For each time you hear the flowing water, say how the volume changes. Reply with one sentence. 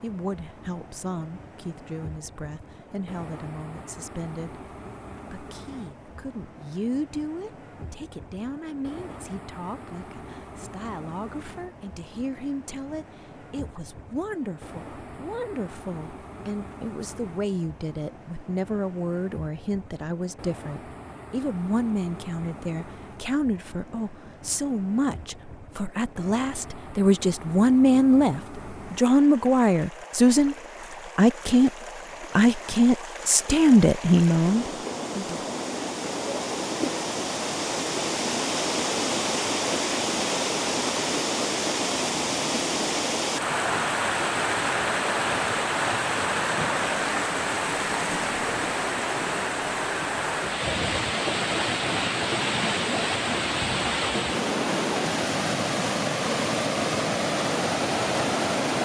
The flowing water can be heard from 0.0 to 58.8 s, getting louder.